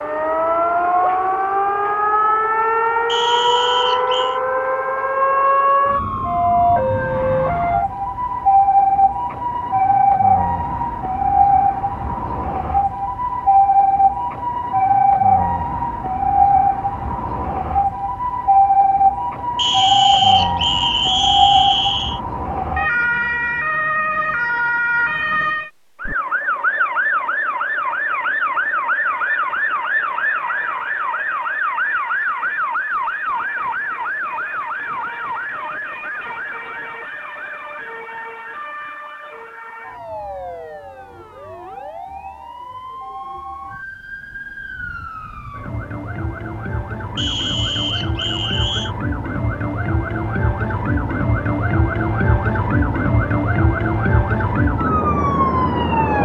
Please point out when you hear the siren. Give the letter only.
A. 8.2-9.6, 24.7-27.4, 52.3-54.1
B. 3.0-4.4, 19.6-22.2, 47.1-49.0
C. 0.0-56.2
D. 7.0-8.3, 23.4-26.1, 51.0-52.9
C.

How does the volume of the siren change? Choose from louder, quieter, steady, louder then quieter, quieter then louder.
quieter then louder.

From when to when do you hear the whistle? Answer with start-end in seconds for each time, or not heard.
3.0-4.4, 19.6-22.2, 47.1-49.0.